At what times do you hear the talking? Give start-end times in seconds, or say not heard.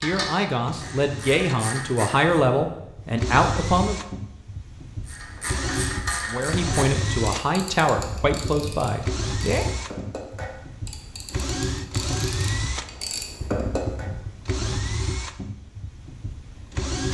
0.0-4.0, 6.2-9.7.